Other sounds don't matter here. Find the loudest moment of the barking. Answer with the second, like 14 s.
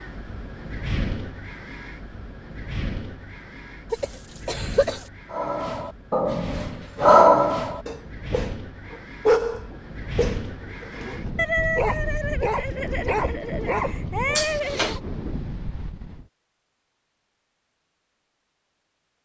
7 s.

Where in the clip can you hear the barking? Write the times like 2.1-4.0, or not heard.
5.3-15.0.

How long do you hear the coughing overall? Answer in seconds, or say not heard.
2 s.